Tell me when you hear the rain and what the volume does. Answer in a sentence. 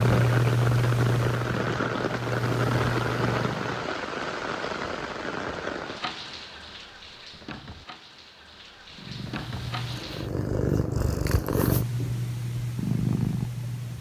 The rain can be heard from 0.0 to 10.3 s, getting quieter.